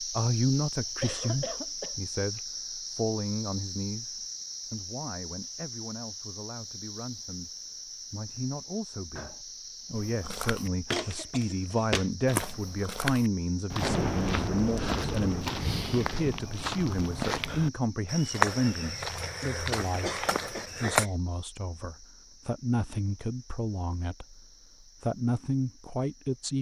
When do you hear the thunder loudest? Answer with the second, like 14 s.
14 s.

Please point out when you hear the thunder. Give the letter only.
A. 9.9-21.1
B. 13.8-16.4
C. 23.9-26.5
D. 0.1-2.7
B.